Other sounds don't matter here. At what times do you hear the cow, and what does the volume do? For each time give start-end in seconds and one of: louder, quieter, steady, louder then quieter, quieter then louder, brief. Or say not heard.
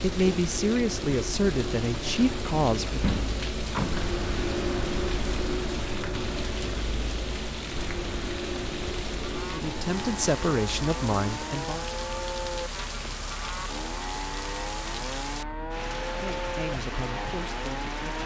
9.2-18.2 steady.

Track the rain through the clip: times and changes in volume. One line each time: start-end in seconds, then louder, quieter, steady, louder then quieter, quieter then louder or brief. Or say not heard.
0.0-18.2 steady.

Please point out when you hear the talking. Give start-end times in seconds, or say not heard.
0.0-3.1, 9.5-11.8, 16.0-18.0.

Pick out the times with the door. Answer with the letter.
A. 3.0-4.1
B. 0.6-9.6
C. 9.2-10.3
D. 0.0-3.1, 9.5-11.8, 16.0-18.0
A.